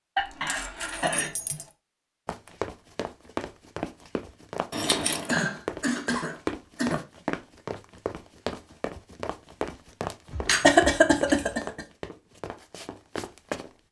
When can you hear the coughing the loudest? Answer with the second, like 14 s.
11 s.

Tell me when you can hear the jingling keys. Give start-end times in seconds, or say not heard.
0.1-1.6, 4.7-5.3, 10.3-11.6.